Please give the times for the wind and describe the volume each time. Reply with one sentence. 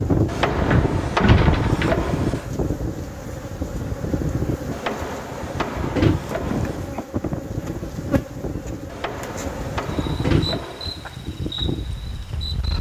The wind can be heard from 0.0 to 12.7 s, getting quieter.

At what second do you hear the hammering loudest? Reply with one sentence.
The loudest moment of the hammering is at 1 second.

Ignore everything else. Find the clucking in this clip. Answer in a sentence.
The clucking can't be heard in this clip.